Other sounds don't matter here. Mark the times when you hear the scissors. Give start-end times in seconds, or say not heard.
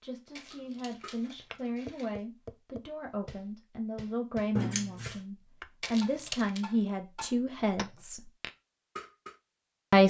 4.5-5.2.